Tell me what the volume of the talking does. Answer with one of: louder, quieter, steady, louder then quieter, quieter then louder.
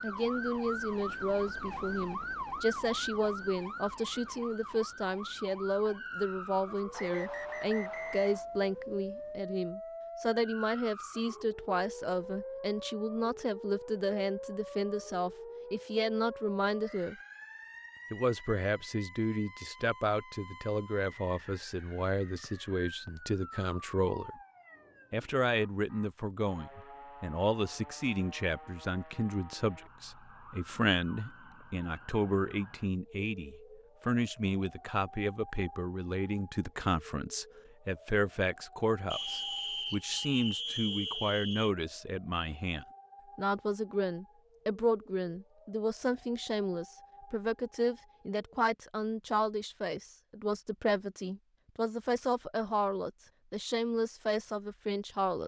steady.